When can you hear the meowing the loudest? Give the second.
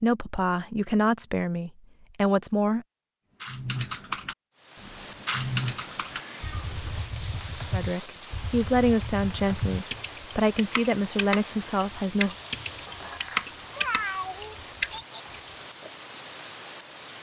14 s.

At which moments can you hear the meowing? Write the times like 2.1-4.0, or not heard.
6.1-7.0, 13.7-15.2.